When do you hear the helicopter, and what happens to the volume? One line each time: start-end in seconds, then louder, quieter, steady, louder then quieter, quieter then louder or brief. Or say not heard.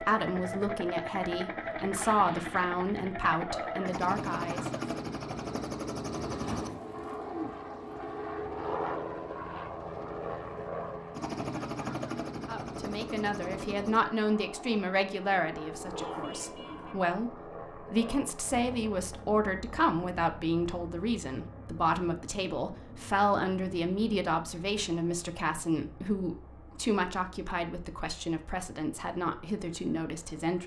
0.0-30.6 quieter.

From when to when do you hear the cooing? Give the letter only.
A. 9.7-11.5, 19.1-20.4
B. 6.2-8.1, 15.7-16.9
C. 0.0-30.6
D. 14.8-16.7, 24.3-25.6
B.